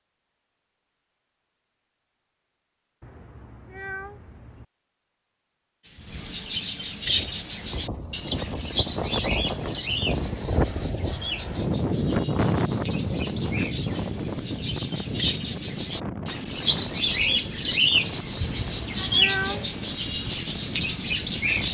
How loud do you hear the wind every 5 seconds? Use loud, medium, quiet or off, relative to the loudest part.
off, medium, loud, medium, medium.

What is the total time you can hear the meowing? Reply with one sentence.
You can hear the meowing for 3 seconds altogether.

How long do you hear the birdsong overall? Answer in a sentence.
The birdsong can be heard for 16 seconds in total.